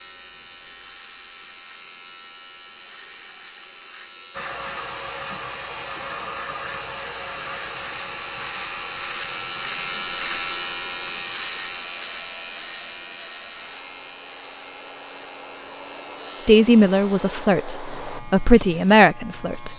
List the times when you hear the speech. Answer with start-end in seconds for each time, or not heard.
16.4-19.7.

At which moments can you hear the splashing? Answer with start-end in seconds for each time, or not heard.
not heard.